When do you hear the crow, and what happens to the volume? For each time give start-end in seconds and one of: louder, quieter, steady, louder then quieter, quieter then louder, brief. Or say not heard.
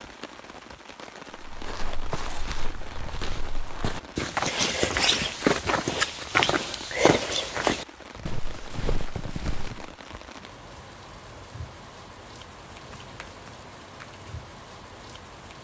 not heard.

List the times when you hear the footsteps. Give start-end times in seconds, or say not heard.
1.4-9.9.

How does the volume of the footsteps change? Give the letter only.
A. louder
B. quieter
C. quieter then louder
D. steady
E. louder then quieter
E.